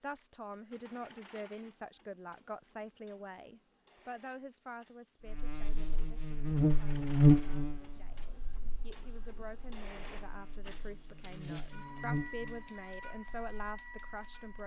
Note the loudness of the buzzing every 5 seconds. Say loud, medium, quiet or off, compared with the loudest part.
off, loud, quiet.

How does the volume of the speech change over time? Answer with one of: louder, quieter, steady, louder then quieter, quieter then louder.
quieter then louder.